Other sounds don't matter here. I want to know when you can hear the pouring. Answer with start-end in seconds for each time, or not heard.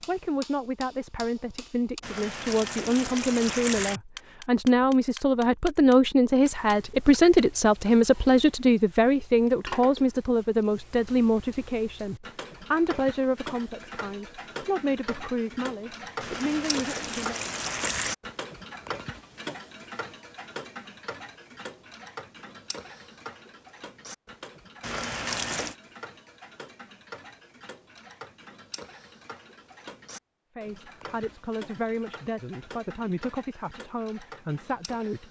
2.0-4.0, 16.2-18.1, 24.8-25.8.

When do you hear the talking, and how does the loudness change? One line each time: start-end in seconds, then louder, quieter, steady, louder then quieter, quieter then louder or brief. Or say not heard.
0.1-17.4 louder then quieter
30.6-35.2 steady.